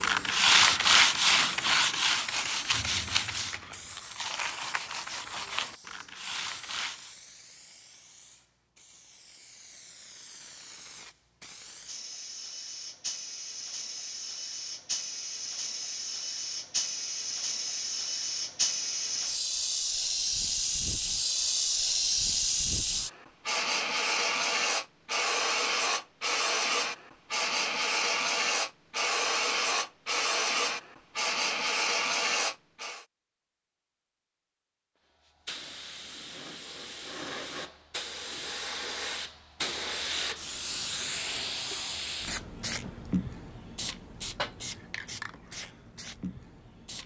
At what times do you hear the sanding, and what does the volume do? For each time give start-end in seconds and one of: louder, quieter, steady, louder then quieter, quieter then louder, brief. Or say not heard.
0.0-7.2 quieter.